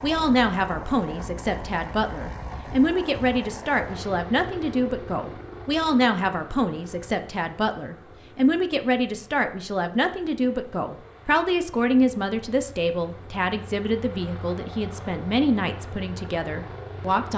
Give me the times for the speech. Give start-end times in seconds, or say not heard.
0.0-17.3.